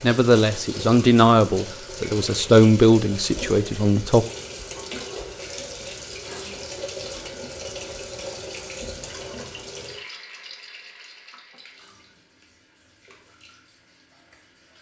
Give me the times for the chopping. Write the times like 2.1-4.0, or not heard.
not heard.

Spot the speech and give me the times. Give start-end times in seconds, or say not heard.
0.0-4.2.